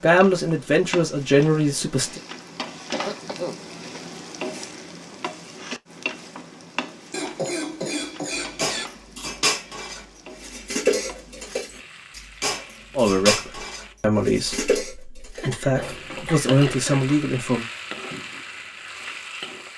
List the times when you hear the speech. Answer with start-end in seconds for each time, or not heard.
0.0-2.2, 12.9-17.6.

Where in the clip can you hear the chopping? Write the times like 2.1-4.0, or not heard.
not heard.